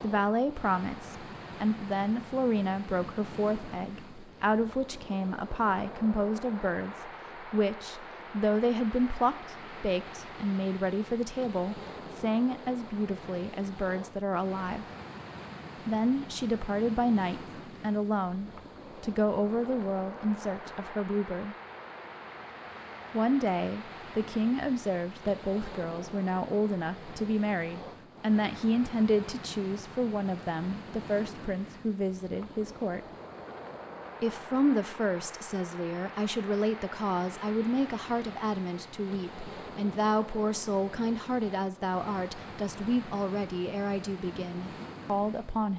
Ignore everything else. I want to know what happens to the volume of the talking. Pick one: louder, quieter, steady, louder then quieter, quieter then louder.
steady.